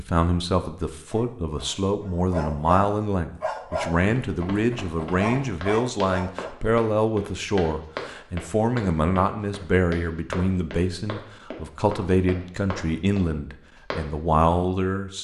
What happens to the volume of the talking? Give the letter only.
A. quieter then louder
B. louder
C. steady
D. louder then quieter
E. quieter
C.